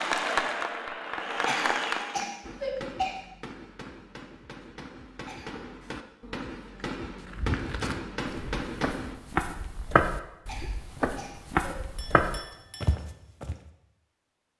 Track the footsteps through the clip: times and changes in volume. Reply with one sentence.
The footsteps can be heard from 7.2 to 13.6 s, getting louder.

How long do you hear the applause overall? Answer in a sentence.
You can hear the applause for 2 seconds altogether.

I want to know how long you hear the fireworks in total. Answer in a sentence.
The fireworks can be heard for 7 seconds in total.